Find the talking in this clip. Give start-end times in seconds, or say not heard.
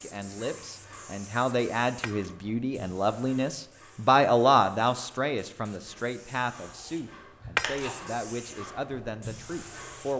0.0-10.1.